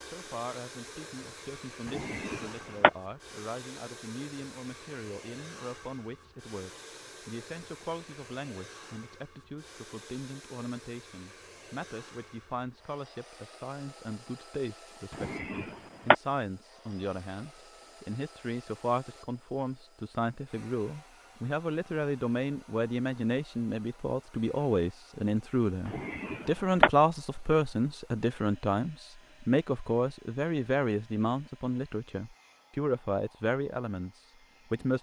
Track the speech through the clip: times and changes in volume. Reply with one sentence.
The speech can be heard from 0.0 to 34.9 s, getting louder.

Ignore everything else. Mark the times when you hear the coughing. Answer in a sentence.
You can hear the coughing from 1.9 to 2.9 s, from 15.1 to 16.1 s and from 25.9 to 26.9 s.